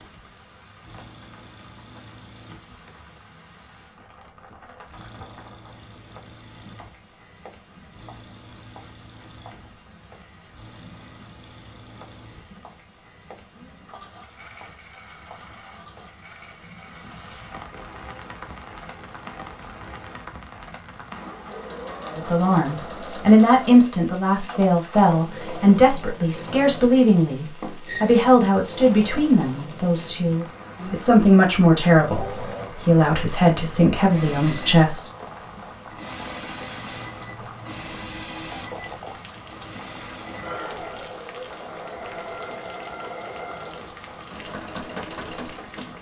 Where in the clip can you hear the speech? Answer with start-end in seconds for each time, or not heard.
22.1-35.0.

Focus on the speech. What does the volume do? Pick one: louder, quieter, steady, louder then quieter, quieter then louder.
steady.